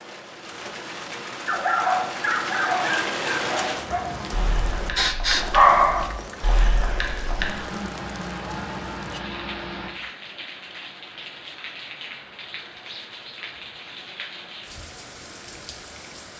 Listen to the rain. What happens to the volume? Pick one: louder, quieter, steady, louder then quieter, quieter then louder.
quieter.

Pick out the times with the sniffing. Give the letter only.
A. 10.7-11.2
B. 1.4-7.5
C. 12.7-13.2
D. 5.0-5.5
D.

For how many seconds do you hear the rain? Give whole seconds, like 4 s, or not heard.
16 s.